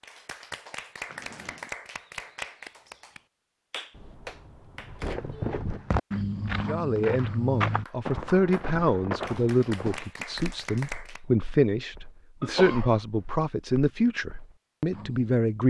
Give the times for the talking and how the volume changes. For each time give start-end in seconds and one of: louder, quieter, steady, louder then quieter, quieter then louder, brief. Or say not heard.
6.7-15.6 steady.